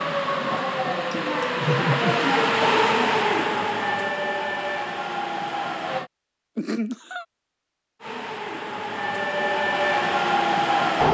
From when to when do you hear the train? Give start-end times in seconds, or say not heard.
0.0-6.1, 8.0-11.0.